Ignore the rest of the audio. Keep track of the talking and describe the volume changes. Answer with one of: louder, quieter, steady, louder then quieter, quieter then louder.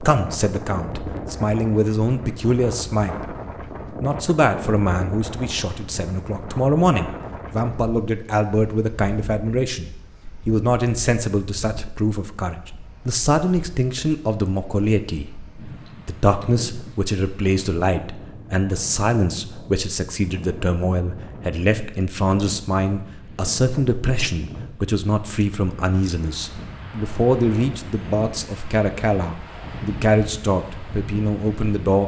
steady.